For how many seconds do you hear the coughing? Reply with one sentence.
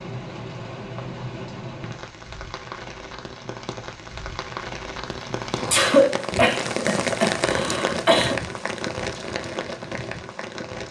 You can hear the coughing for 3 seconds altogether.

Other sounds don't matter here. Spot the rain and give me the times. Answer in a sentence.
You can hear the rain from 0.0 to 10.8 s.